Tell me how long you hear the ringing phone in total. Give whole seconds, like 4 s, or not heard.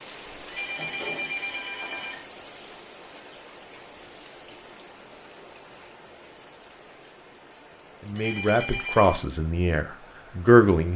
3 s.